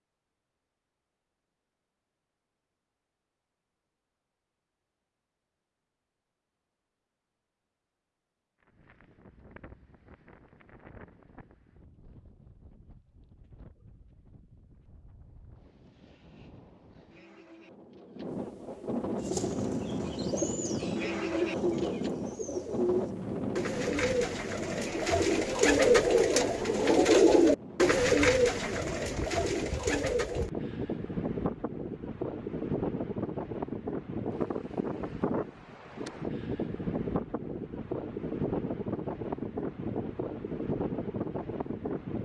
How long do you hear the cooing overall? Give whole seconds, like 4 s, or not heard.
11 s.